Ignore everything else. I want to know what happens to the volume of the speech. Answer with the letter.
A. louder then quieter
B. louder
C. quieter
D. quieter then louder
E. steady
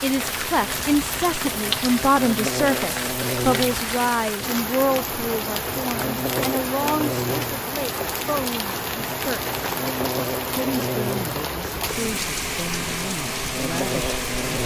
C.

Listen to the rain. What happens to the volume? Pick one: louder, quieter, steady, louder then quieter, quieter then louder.
steady.